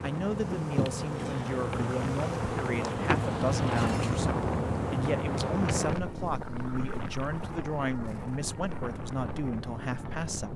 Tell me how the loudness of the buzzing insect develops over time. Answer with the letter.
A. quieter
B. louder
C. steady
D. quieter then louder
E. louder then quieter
A.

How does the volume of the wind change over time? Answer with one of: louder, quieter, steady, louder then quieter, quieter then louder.
louder then quieter.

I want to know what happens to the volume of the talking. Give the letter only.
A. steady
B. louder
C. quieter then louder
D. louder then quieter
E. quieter
A.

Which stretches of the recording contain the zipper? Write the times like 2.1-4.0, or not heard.
not heard.